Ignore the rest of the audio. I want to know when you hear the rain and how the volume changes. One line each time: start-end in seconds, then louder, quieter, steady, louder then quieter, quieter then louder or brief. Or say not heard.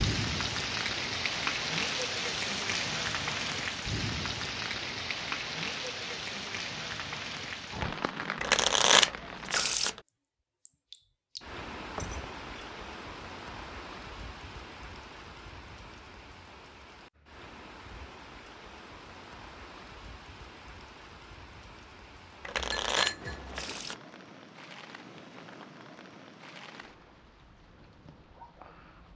0.0-29.1 quieter.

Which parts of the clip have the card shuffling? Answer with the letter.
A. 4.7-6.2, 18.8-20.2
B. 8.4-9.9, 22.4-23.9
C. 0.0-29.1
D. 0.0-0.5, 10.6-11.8
B.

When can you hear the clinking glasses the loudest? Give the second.
23 s.